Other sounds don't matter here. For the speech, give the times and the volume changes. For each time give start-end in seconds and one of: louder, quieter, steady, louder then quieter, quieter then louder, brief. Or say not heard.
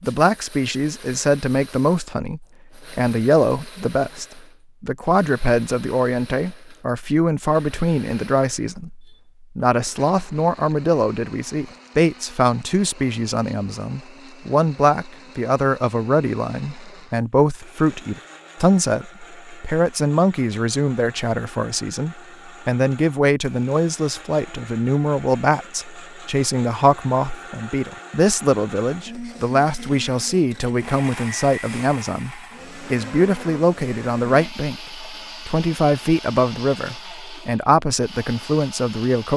0.0-39.3 steady.